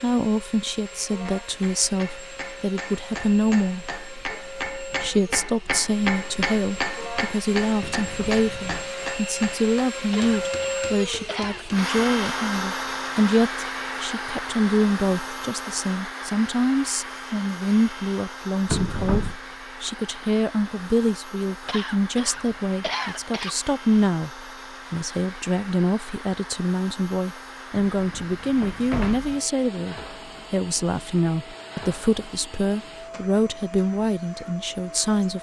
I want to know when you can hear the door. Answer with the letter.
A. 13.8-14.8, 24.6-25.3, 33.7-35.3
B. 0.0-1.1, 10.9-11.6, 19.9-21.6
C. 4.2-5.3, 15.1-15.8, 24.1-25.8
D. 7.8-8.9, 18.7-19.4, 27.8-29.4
D.